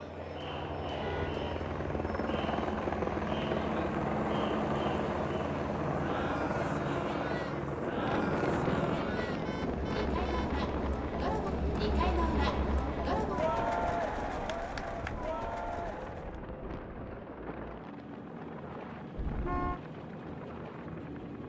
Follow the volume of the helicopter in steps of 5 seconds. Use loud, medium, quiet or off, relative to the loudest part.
loud, loud, medium, medium, medium.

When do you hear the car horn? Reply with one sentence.
You can hear the car horn from 0.9 to 1.4 s, from 9.2 to 10.6 s and from 19.1 to 19.8 s.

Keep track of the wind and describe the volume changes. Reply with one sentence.
The loudness of the wind goes down.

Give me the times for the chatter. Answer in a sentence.
You can hear the chatter from 0.0 to 16.4 s.